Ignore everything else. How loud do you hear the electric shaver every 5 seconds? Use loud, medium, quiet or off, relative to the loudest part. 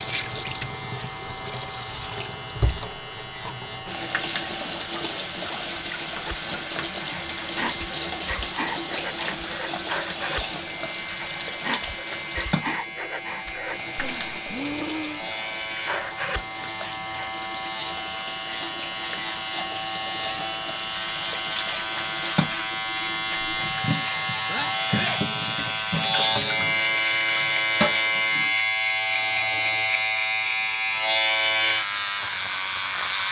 quiet, quiet, quiet, medium, medium, loud, loud.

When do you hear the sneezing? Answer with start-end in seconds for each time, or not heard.
24.4-25.2.